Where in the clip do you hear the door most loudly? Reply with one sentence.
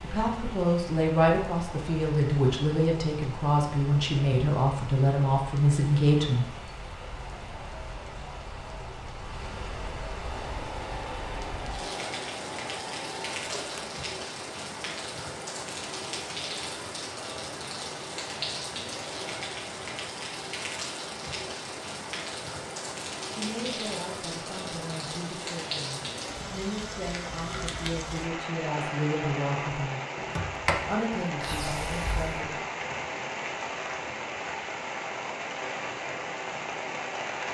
The volume of the door peaks at 31 seconds.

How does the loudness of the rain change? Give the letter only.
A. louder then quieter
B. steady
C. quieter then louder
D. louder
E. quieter
D.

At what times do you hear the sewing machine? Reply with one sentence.
You can hear the sewing machine from 10.2 to 13.9 s.